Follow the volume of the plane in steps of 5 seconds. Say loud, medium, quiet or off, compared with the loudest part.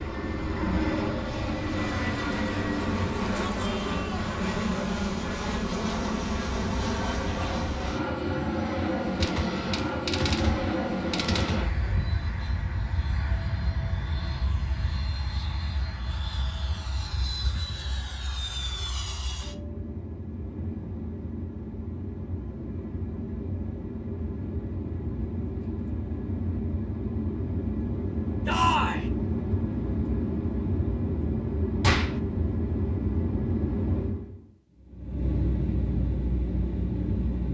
loud, loud, loud, medium, medium, loud, loud, loud.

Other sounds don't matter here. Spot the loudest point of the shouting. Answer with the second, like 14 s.
29 s.